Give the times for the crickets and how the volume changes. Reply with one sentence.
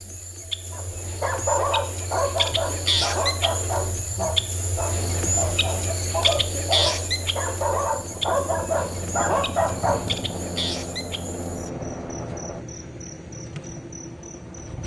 The crickets can be heard from 0.0 to 14.8 s, getting quieter.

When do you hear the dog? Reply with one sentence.
You can hear the dog from 0.7 to 10.2 s.